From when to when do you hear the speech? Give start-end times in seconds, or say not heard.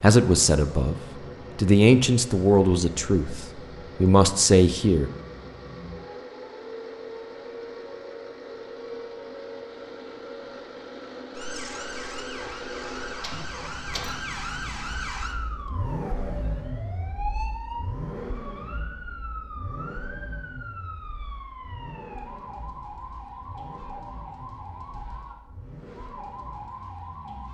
0.0-0.9, 1.6-5.1.